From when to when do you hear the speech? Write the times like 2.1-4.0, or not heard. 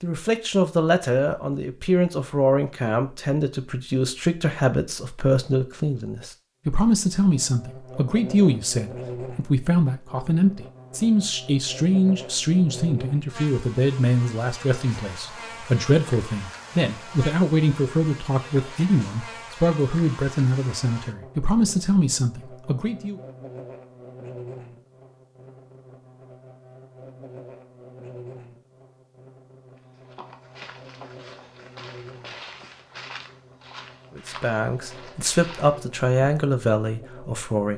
0.0-23.2, 34.1-37.7.